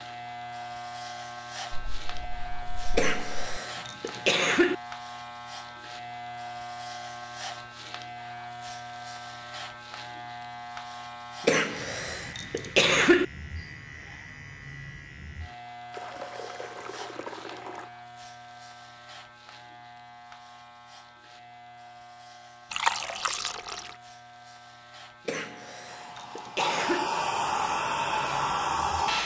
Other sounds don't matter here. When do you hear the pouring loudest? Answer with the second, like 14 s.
23 s.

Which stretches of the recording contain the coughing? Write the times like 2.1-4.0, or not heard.
3.0-4.8, 11.4-13.2, 25.2-27.1.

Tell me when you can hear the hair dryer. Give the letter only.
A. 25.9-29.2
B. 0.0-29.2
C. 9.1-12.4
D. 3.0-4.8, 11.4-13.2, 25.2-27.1
A.